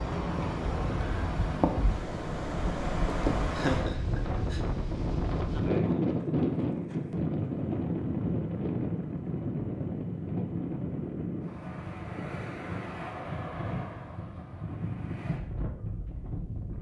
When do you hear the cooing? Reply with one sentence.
The cooing can't be heard in this clip.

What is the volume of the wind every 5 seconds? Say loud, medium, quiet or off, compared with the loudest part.
loud, loud, medium, medium.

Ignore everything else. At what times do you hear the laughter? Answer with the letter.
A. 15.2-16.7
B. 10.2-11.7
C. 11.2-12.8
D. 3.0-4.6
D.